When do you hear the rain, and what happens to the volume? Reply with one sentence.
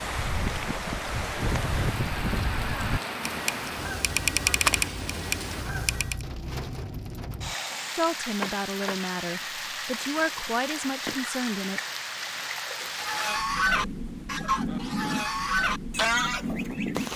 The rain can be heard from 0.0 to 17.1 s, at a steady volume.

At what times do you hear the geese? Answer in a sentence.
You can hear the geese from 0.0 to 6.2 s and from 12.9 to 17.1 s.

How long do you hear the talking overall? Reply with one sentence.
You can hear the talking for 4 seconds altogether.